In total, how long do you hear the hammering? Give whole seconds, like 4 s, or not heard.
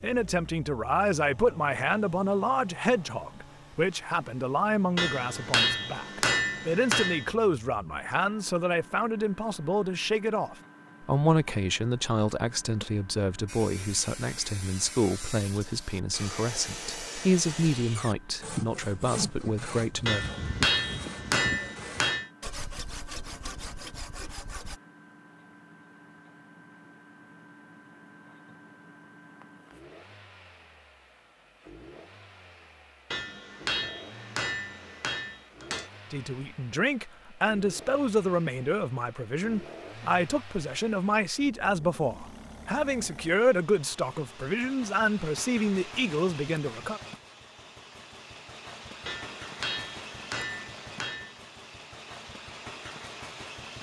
10 s.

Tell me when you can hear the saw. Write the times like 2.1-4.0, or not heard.
13.4-24.8.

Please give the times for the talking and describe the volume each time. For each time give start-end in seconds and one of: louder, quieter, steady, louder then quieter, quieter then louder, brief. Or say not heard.
0.0-20.2 steady
36.1-47.0 steady.